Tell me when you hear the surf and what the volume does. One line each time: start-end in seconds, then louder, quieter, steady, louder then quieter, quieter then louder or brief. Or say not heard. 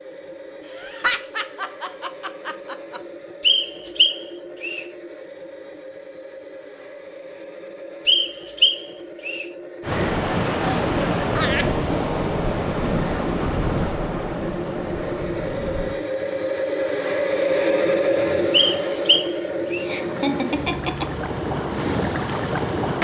9.8-22.9 quieter then louder.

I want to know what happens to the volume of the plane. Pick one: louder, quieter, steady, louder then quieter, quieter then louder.
louder.